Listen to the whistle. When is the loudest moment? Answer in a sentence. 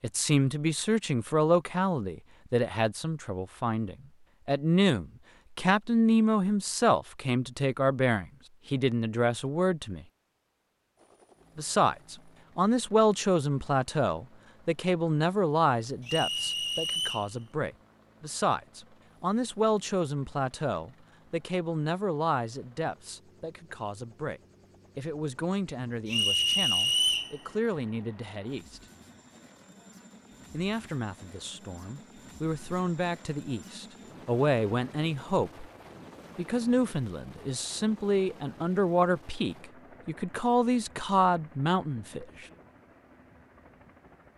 The volume of the whistle peaks at 27 seconds.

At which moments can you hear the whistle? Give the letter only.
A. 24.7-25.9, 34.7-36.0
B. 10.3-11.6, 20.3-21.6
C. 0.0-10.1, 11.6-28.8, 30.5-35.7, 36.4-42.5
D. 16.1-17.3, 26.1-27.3
D.